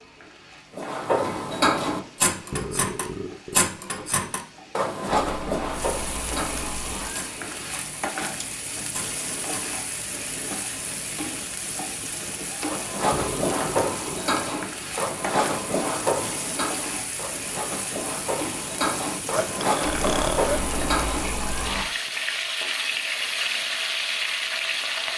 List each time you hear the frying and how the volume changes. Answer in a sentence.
You can hear the frying from 0.0 to 25.1 s, getting louder.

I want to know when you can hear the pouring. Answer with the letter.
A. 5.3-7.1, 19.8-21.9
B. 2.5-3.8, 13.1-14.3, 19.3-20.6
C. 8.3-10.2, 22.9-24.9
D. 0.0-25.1
A.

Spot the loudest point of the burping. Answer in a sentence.
The loudest moment of the burping is at 20 seconds.